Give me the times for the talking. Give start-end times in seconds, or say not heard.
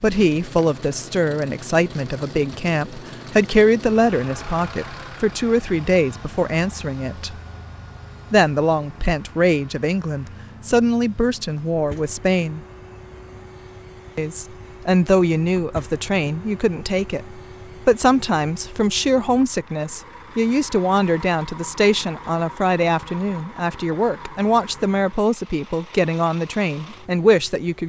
0.0-7.3, 8.3-12.6, 14.2-27.8.